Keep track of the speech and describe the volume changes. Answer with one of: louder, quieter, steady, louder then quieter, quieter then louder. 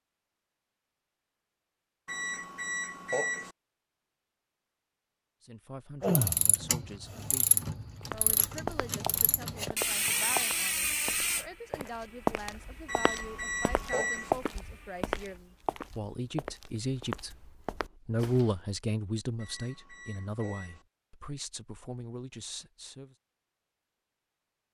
louder then quieter.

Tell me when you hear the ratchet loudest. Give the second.
6 s.